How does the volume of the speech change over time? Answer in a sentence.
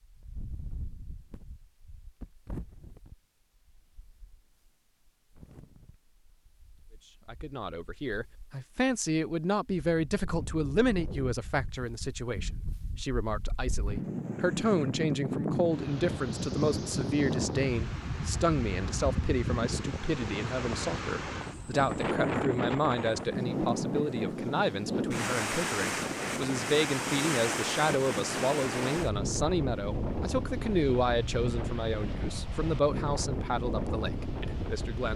The volume of the speech stays about the same.